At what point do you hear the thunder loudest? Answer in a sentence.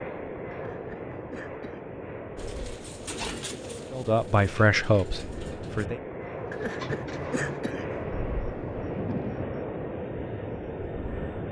The volume of the thunder peaks at 9 seconds.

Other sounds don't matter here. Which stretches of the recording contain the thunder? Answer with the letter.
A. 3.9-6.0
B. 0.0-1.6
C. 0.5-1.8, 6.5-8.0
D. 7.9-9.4
D.